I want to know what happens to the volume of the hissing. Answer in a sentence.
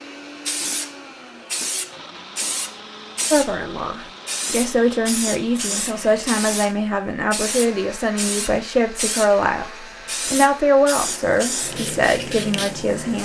The loudness of the hissing stays about the same.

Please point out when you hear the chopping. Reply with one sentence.
You can't hear the chopping here.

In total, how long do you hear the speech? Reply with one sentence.
You can hear the speech for 10 seconds altogether.